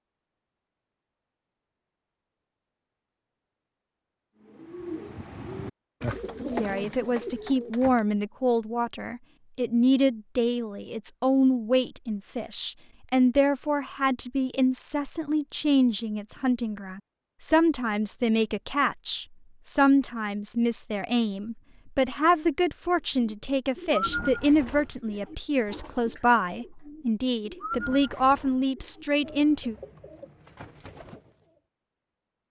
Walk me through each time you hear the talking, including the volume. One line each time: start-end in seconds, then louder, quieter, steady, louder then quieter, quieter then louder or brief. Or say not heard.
6.5-29.8 steady.